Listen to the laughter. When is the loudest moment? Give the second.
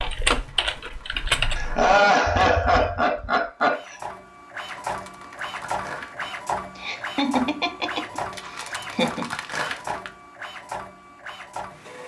2 s.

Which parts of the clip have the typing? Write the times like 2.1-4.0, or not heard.
0.0-3.5.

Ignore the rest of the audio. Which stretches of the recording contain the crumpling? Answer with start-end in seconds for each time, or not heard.
0.4-1.9, 4.6-6.5, 8.3-10.1.